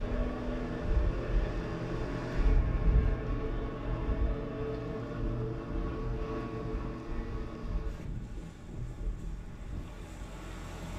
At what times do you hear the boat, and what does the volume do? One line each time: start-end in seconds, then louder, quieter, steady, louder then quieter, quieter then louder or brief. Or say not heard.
0.0-10.9 quieter.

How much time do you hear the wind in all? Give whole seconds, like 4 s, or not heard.
11 s.